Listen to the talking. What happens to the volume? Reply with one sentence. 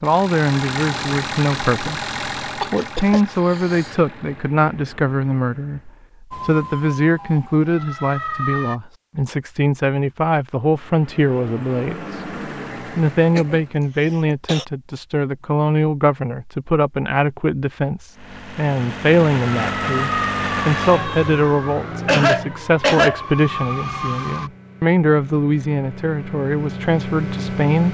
The volume of the talking stays about the same.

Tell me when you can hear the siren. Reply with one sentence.
The siren can be heard from 6.3 to 8.8 s and from 19.6 to 24.5 s.